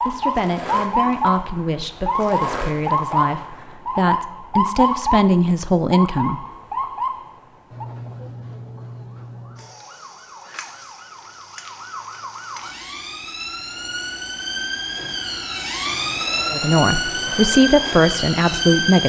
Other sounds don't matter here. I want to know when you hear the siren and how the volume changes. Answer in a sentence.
You can hear the siren from 0.0 to 19.0 s, getting quieter then louder.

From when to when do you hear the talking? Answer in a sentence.
The talking can be heard from 0.0 to 6.4 s and from 16.5 to 19.0 s.